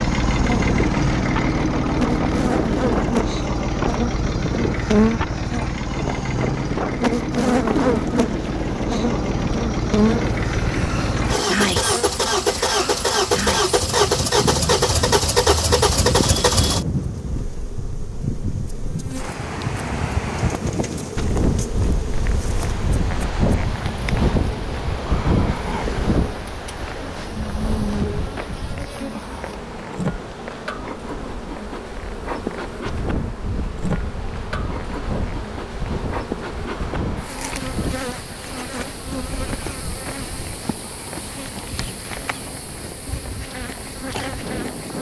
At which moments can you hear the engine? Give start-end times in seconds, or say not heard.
0.0-16.9.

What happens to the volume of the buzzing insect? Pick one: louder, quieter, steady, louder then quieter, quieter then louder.
quieter.